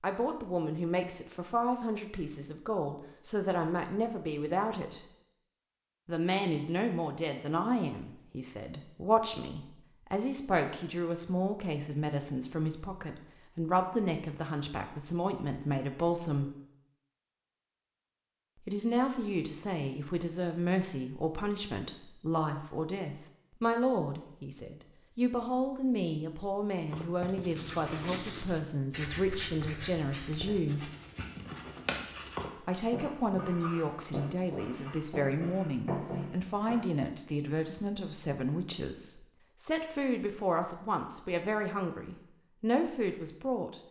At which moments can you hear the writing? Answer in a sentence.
The writing can be heard from 26.9 to 36.9 s.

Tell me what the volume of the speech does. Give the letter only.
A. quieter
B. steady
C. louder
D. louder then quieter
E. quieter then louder
B.